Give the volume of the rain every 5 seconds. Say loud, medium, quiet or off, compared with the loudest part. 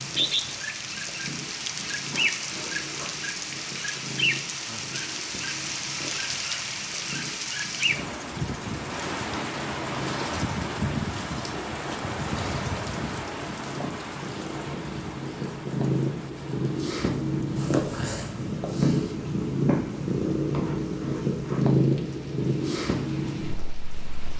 loud, loud, loud, quiet, quiet.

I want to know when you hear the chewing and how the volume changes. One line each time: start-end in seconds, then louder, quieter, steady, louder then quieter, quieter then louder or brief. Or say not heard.
not heard.